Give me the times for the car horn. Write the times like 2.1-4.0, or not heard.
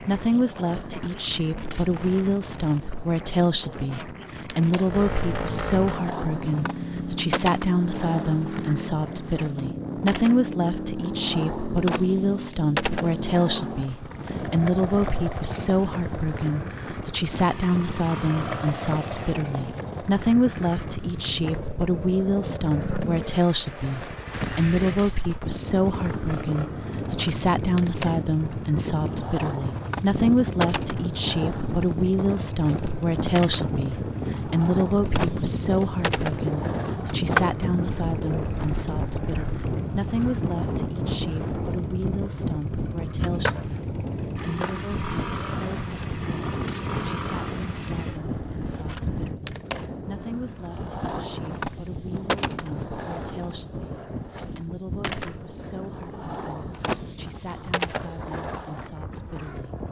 not heard.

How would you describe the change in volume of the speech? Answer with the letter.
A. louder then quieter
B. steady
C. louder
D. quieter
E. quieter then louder
D.